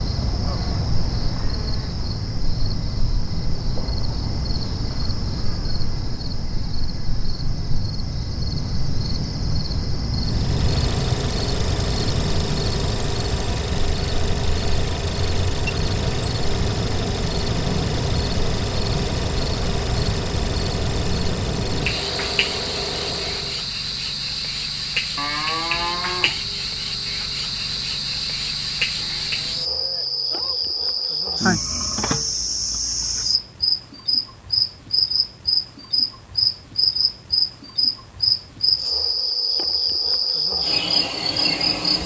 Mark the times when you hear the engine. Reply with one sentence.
The engine can be heard from 10.2 to 23.7 s.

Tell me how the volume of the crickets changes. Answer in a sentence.
The loudness of the crickets goes up.